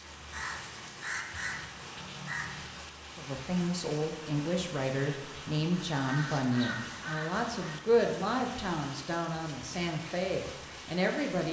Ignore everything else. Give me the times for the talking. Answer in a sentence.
The talking can be heard from 3.1 to 11.4 s.